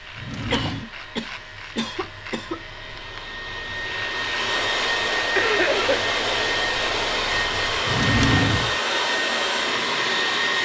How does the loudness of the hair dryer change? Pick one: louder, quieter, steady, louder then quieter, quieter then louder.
louder.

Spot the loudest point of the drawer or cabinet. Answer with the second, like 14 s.
8 s.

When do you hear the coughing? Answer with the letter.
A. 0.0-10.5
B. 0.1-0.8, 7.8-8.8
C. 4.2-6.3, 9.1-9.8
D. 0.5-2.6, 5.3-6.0
D.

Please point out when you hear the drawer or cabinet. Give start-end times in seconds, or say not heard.
0.1-0.8, 7.8-8.8.